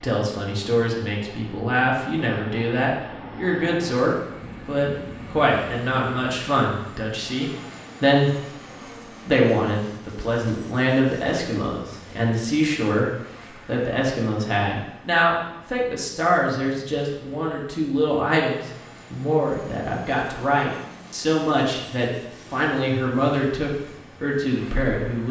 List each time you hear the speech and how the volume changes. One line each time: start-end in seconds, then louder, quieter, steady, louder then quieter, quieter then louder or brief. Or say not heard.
0.0-8.3 steady
9.2-25.2 steady.